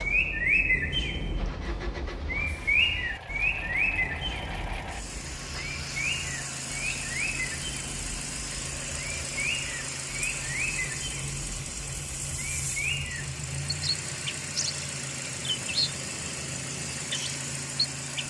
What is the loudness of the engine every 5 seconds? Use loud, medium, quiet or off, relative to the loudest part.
medium, loud, loud, loud.